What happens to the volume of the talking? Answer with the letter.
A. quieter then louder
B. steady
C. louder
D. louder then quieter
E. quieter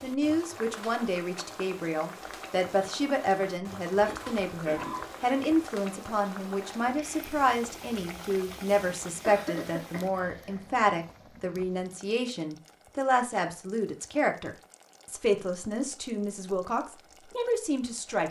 B.